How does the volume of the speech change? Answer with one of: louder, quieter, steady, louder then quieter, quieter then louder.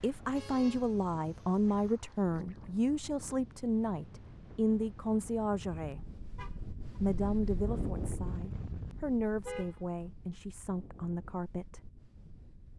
quieter.